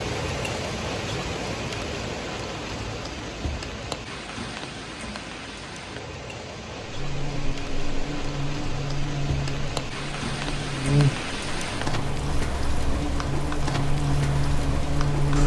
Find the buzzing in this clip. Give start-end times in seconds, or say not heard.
6.8-15.4.